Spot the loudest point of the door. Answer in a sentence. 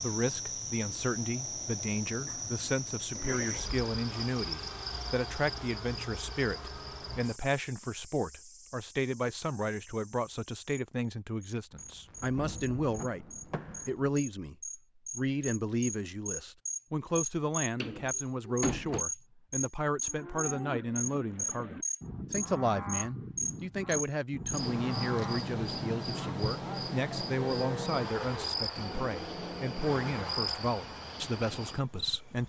The volume of the door peaks at 19 seconds.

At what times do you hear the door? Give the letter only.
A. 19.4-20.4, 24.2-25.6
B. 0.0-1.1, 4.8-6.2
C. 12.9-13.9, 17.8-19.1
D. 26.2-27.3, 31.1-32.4
C.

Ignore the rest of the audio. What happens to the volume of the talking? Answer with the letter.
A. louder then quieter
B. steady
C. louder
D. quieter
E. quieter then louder
B.